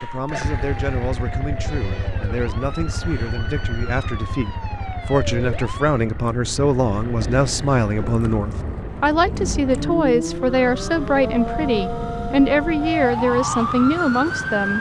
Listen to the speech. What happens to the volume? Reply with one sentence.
The loudness of the speech goes up.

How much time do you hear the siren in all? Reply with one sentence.
The siren can be heard for 15 seconds in total.